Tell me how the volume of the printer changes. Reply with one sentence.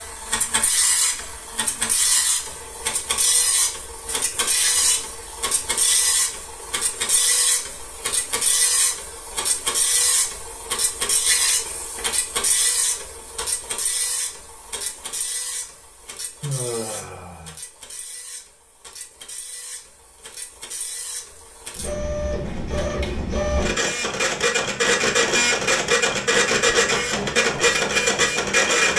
The loudness of the printer goes down, then up.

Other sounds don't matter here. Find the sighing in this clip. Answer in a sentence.
The sighing can be heard from 16.4 to 17.6 s.